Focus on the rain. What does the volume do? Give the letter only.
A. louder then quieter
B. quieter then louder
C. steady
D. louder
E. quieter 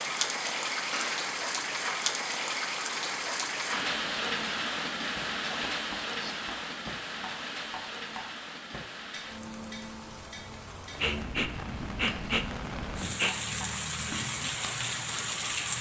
B.